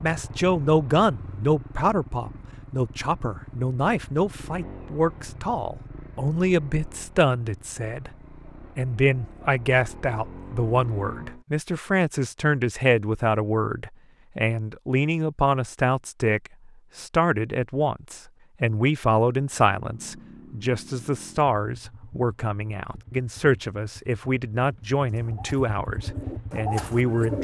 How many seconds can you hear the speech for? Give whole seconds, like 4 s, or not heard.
27 s.